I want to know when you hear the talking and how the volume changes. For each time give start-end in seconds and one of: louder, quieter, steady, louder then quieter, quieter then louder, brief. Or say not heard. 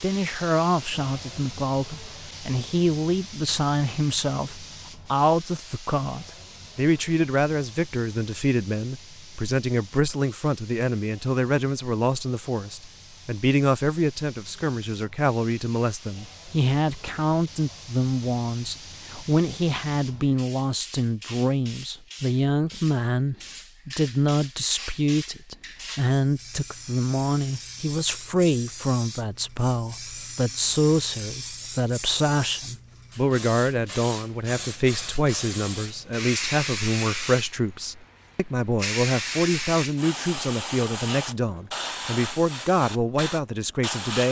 0.0-44.2 steady.